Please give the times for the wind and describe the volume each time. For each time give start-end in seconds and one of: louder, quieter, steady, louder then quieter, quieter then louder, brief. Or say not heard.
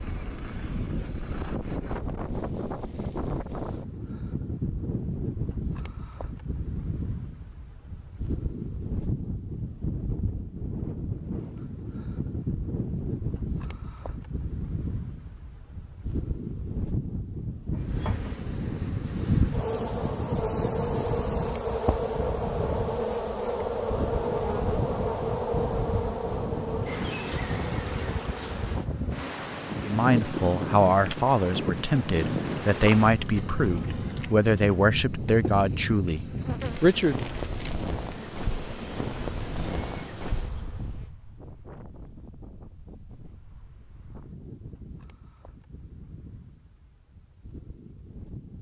0.0-48.5 quieter.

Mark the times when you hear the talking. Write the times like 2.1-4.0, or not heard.
29.8-37.2.